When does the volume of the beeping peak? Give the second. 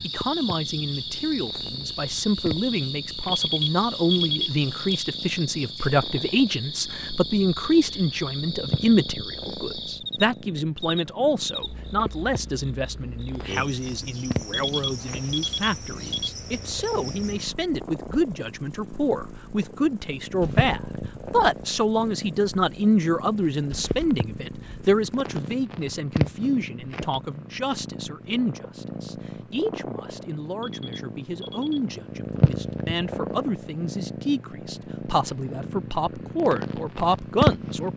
4 s.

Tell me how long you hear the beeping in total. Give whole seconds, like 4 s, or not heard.
5 s.